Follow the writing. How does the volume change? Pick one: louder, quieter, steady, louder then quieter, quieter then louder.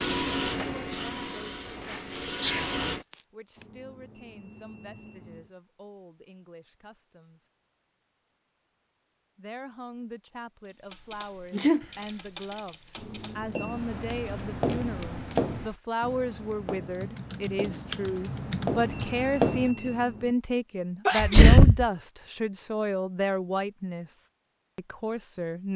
quieter then louder.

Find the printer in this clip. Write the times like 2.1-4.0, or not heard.
0.0-3.0.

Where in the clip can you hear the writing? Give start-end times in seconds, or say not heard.
13.5-20.1.